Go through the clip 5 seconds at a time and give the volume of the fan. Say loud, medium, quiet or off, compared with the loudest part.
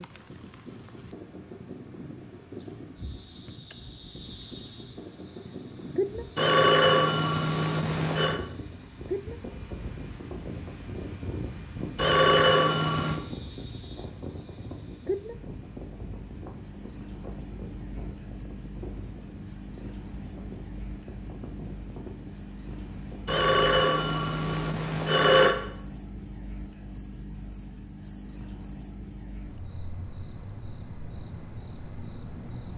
medium, loud, loud, medium, medium, off, off.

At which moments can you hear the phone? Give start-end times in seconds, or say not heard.
6.3-8.4, 11.9-13.2, 23.2-25.6.